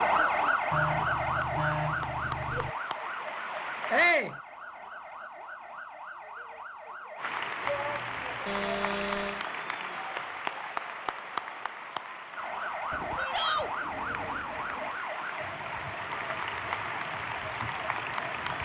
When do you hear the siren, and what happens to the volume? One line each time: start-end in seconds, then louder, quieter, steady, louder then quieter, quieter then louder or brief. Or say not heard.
0.0-7.3 quieter
12.3-18.6 quieter.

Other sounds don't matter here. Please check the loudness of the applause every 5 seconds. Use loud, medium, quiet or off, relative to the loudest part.
medium, loud, loud, loud.